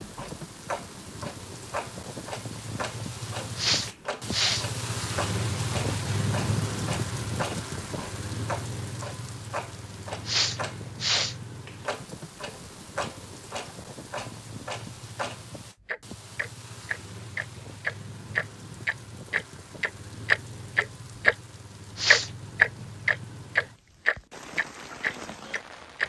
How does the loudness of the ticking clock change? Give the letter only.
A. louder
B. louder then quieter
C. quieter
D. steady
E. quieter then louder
A.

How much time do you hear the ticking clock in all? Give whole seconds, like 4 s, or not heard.
25 s.